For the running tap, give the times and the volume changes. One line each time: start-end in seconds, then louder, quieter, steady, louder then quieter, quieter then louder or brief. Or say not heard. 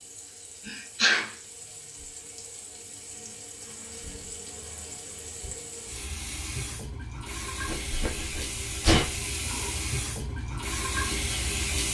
0.0-11.8 louder.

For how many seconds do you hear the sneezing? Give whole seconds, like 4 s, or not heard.
2 s.